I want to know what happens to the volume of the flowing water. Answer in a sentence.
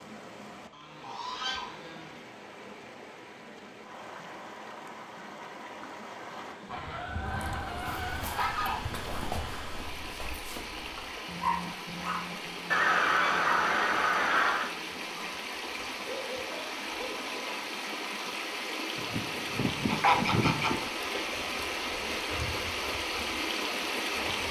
The loudness of the flowing water goes up.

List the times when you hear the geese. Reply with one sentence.
The geese can be heard from 0.7 to 2.2 s, from 6.7 to 8.8 s, from 12.7 to 14.7 s and from 18.9 to 20.8 s.